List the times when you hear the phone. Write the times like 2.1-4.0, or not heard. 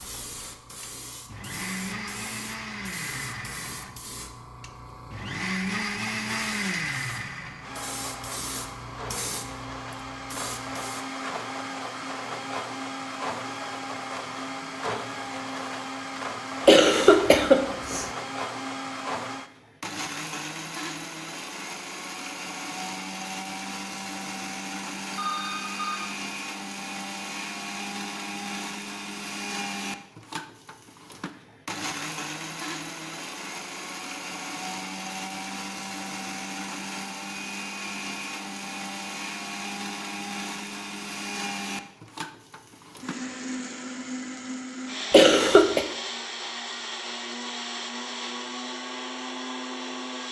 25.1-26.0.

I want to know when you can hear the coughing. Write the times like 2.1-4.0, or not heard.
16.6-18.1, 45.1-45.9.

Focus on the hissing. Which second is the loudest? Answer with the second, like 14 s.
9 s.